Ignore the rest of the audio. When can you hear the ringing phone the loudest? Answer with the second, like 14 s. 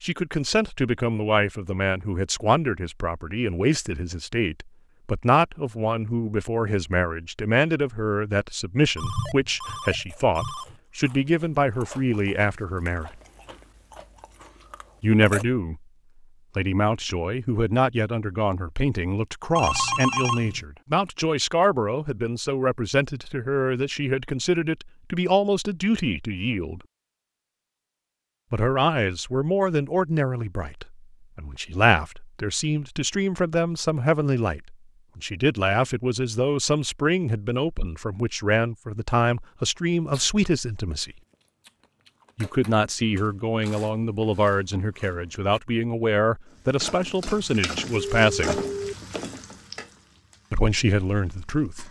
20 s.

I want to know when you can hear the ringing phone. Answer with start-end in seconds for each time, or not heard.
8.9-10.8, 19.6-20.6, 48.0-49.0.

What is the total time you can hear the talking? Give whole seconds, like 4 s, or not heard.
44 s.